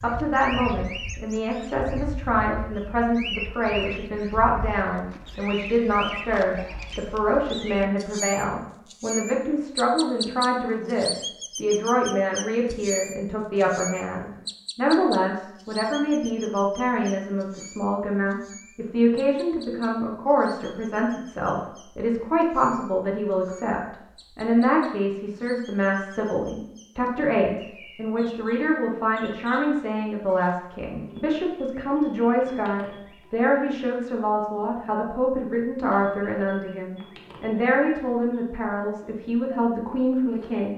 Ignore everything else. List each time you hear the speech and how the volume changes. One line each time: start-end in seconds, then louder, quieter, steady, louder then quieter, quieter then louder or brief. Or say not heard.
0.0-40.7 steady.